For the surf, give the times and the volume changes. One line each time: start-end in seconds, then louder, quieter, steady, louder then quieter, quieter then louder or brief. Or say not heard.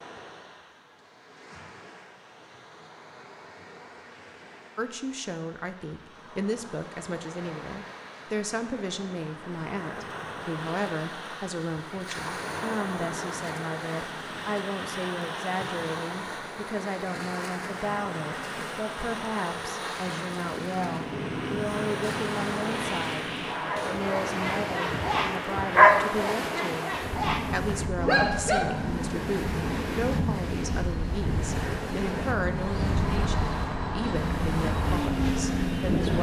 0.0-36.1 louder.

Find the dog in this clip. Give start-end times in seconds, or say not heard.
23.6-29.1.